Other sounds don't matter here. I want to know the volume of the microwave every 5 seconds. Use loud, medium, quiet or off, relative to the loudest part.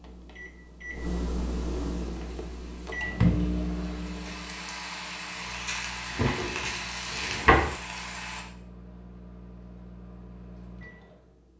loud, quiet, quiet.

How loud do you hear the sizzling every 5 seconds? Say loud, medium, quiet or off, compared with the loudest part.
medium, loud, off.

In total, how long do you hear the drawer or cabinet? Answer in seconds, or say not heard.
2 s.